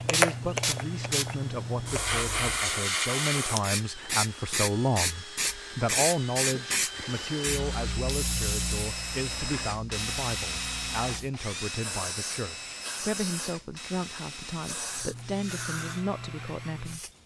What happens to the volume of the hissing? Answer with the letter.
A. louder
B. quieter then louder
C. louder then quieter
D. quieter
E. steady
D.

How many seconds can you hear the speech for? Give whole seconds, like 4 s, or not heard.
17 s.